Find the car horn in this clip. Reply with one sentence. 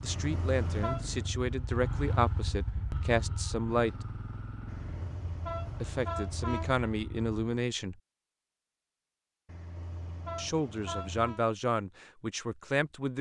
The car horn can be heard from 0.1 to 1.1 s, from 4.7 to 6.8 s and from 9.4 to 11.4 s.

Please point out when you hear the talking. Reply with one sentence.
You can hear the talking from 0.0 to 4.0 s, from 5.8 to 8.0 s and from 10.3 to 13.1 s.